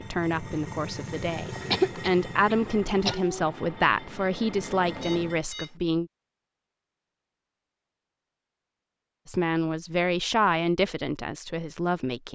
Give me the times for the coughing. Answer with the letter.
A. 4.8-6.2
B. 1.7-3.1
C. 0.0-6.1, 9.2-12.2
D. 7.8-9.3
B.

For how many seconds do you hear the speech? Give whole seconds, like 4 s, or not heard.
9 s.